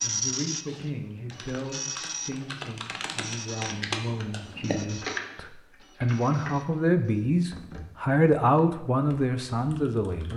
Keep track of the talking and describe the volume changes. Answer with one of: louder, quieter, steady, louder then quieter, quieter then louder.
louder.